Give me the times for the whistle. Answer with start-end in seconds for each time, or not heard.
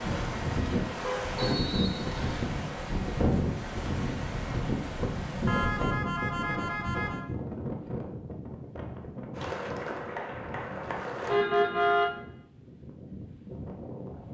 1.4-2.5.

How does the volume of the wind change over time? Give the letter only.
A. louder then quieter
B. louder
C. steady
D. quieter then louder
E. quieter
E.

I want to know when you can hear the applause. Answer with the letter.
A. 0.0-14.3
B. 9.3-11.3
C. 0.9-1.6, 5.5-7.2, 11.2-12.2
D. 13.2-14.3
B.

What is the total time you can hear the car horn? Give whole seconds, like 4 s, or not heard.
3 s.